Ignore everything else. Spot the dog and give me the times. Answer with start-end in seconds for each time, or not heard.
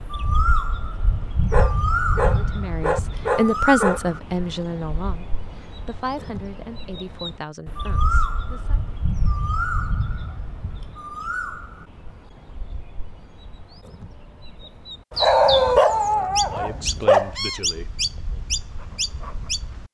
1.5-4.0, 15.1-17.4.